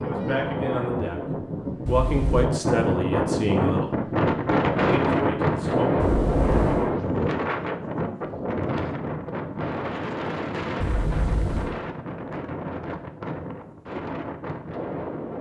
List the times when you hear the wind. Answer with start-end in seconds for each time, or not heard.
0.0-15.3.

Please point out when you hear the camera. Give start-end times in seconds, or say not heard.
1.9-2.5, 6.0-7.0, 10.8-11.8.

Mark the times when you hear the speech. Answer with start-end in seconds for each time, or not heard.
0.0-1.2, 1.9-4.0, 4.8-6.0.